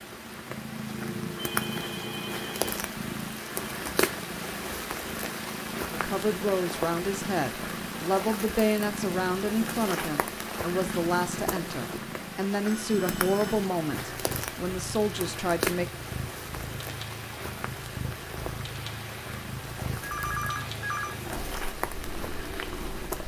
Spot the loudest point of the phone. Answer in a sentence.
The volume of the phone peaks at 20 seconds.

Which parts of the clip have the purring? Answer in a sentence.
You can hear the purring from 0.0 to 23.2 s.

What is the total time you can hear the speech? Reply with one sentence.
The speech can be heard for 10 seconds in total.